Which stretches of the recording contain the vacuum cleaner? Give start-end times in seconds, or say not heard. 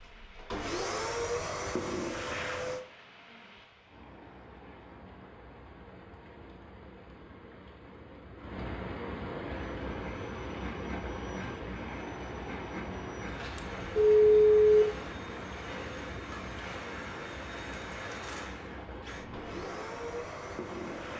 0.0-2.9, 9.4-21.1.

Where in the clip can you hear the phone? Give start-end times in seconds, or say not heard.
13.6-14.8.